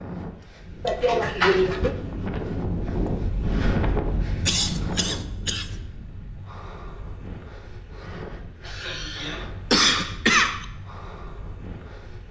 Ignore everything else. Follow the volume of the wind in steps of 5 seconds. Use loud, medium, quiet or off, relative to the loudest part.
loud, medium, quiet.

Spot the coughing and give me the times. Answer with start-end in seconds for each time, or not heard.
0.8-1.9, 4.5-5.8, 8.7-10.7.